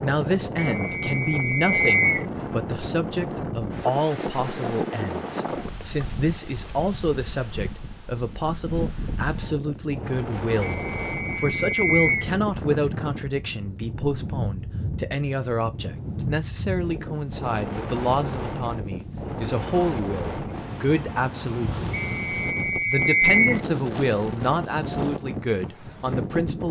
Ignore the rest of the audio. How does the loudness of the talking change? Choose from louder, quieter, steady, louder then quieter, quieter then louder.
steady.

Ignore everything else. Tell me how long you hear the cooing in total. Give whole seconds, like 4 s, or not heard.
not heard.